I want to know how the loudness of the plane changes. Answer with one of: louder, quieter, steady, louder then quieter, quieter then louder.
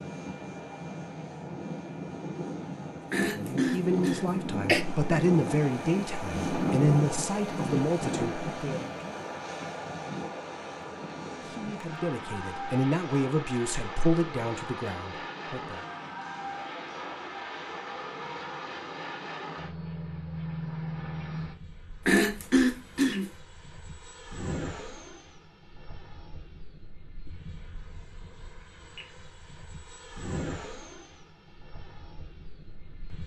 quieter.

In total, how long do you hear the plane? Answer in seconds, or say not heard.
33 s.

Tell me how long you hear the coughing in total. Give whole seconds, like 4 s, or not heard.
3 s.